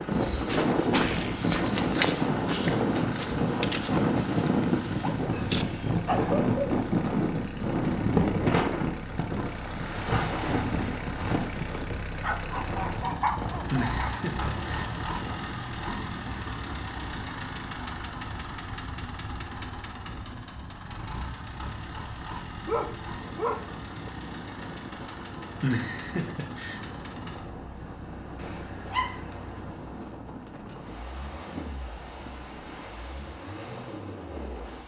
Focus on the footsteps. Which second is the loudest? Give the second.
2 s.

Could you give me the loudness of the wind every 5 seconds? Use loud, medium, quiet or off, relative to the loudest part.
loud, loud, medium, quiet, quiet, quiet, quiet.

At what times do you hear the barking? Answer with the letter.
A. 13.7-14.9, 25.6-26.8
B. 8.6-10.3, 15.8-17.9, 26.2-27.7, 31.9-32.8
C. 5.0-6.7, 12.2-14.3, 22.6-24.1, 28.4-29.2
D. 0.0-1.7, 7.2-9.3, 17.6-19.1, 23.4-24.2
C.